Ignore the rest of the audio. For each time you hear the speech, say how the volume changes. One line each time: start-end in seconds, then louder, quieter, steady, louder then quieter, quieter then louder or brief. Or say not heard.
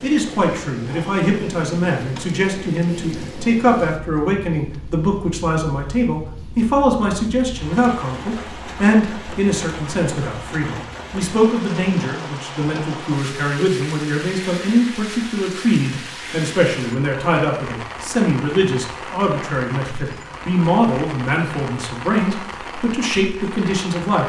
0.0-24.2 steady.